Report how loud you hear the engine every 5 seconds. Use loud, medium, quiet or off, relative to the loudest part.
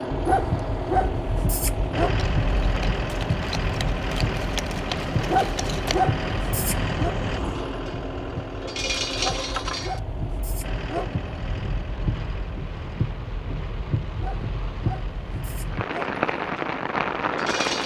loud, loud, medium, medium.